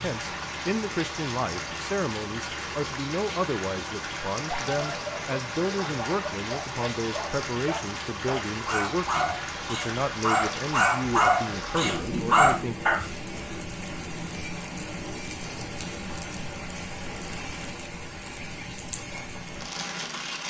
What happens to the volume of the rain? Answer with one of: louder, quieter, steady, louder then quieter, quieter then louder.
steady.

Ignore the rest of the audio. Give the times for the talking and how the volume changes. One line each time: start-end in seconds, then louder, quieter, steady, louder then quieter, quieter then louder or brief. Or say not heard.
0.0-12.8 steady.